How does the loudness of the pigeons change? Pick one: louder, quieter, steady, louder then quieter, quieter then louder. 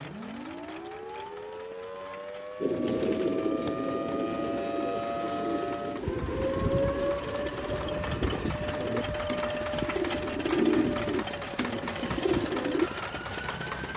quieter then louder.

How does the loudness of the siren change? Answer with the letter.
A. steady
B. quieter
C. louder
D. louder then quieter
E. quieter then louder
D.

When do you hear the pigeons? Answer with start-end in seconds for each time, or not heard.
2.6-12.9.